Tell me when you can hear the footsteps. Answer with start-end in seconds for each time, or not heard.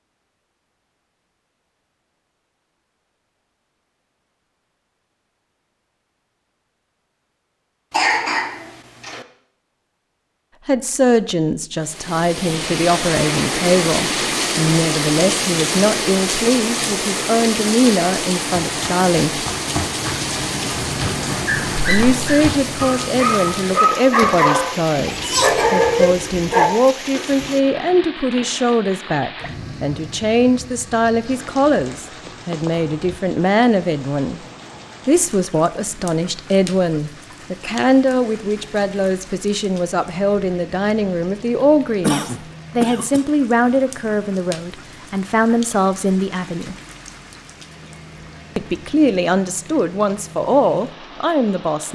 18.6-23.8.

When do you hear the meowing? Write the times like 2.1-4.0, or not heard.
not heard.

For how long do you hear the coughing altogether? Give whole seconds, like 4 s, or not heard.
4 s.